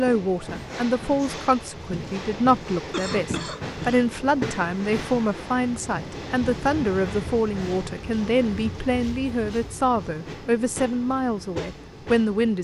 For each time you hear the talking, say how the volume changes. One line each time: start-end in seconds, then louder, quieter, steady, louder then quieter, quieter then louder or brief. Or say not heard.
0.0-12.5 steady.